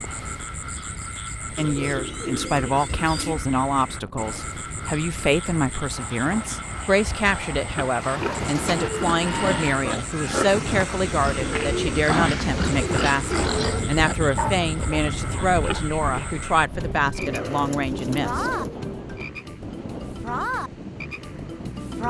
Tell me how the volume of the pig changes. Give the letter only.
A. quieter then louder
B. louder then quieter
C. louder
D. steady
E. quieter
D.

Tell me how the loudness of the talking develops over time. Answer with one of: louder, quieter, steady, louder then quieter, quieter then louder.
steady.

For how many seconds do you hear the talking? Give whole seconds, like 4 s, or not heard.
17 s.